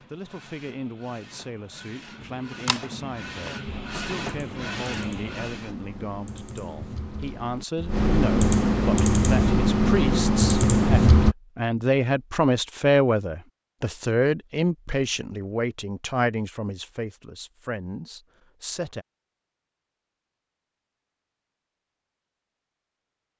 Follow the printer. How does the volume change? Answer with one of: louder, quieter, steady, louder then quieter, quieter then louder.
louder.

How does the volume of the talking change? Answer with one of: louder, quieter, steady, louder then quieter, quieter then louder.
louder then quieter.